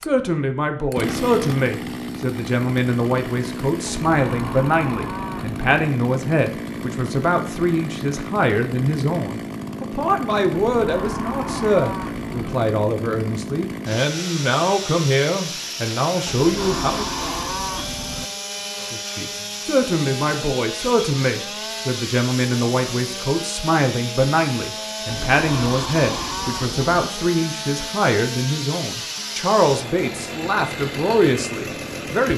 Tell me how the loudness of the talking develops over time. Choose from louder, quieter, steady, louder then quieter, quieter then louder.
steady.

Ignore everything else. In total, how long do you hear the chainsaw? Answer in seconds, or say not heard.
32 s.